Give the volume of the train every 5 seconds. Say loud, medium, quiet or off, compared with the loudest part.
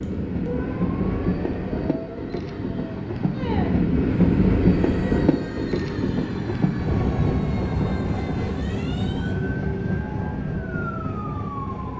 loud, loud, medium.